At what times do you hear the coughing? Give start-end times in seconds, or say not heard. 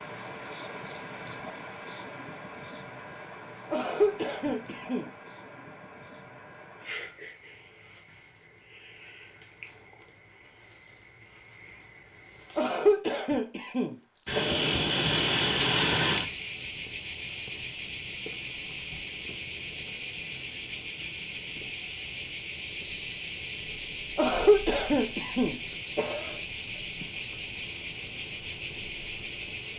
3.7-5.1, 12.6-14.7, 24.1-26.4.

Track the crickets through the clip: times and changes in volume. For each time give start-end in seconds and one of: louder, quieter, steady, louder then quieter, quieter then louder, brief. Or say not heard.
0.0-29.7 quieter then louder.